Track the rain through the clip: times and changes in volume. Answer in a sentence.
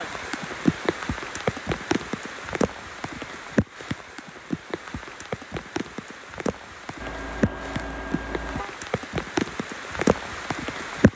You can hear the rain from 0.0 to 11.1 s, getting quieter then louder.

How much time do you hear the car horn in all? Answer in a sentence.
You can hear the car horn for 2 seconds altogether.